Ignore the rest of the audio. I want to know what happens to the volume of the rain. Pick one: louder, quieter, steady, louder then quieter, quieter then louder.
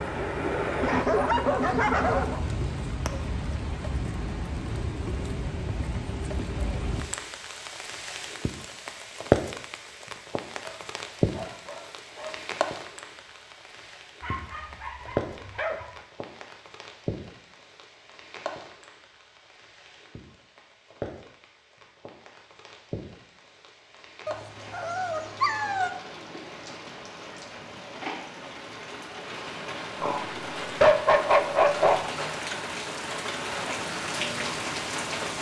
quieter then louder.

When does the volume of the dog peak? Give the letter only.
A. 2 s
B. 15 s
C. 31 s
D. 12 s
C.